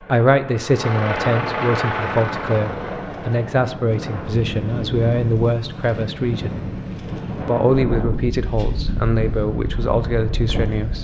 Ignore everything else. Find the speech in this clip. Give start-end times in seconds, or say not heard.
0.1-6.6, 7.3-10.9.